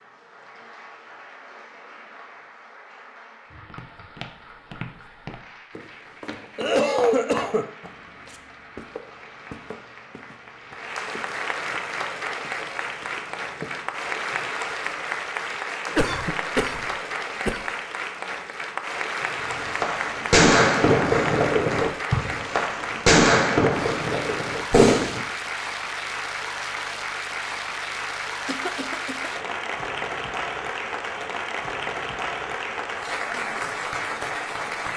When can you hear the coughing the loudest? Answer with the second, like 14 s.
7 s.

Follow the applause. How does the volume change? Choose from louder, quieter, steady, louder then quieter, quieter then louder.
louder.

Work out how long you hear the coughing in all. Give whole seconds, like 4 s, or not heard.
4 s.